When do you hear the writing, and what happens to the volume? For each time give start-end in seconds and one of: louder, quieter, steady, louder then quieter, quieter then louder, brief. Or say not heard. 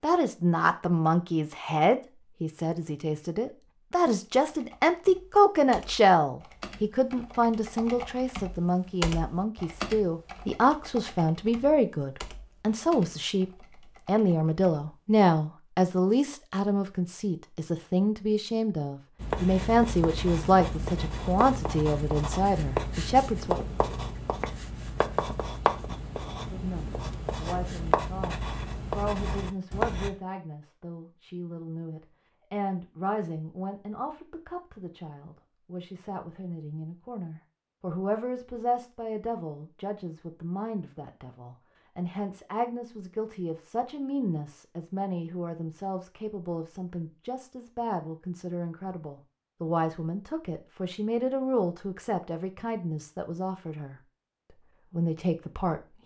19.2-30.1 steady.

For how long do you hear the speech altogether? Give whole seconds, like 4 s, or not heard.
52 s.